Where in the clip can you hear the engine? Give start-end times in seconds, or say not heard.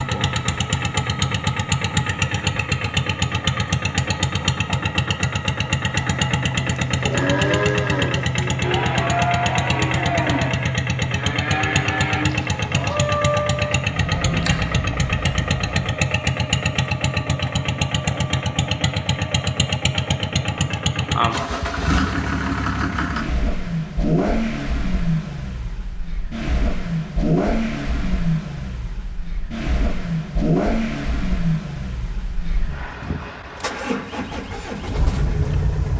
0.0-35.9.